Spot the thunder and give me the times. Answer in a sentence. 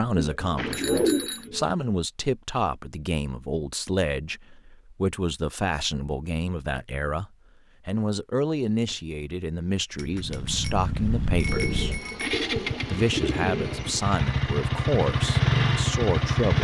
You can't hear the thunder here.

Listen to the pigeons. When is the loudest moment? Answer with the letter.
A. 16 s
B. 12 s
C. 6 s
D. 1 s
D.